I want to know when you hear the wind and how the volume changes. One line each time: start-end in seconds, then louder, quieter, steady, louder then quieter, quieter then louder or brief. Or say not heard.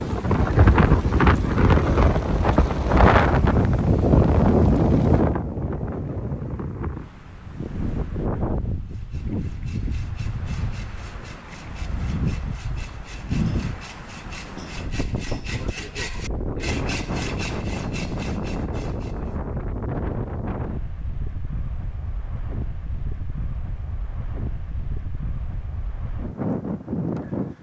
0.0-27.5 quieter.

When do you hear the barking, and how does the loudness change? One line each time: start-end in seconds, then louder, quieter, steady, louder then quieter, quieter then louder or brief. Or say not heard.
not heard.